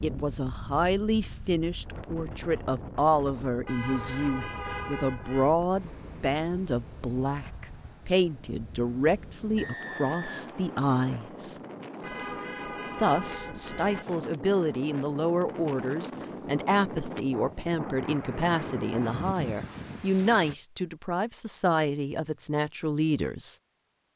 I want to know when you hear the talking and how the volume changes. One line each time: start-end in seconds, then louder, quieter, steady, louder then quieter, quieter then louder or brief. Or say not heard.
0.0-11.6 steady
12.9-23.6 steady.